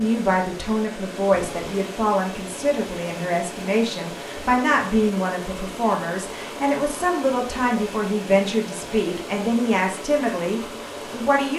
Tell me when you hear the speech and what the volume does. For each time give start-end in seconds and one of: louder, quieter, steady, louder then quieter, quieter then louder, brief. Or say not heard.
0.0-11.5 steady.